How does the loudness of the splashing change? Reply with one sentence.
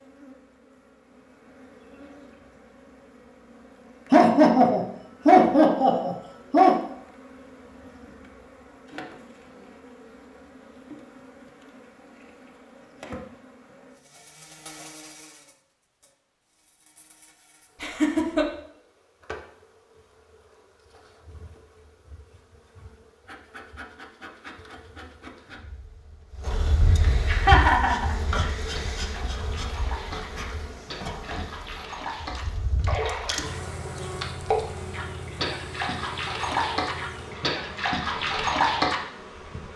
The volume of the splashing goes up.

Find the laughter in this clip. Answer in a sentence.
The laughter can be heard from 4.1 to 6.8 s, from 17.8 to 18.4 s and from 26.8 to 28.5 s.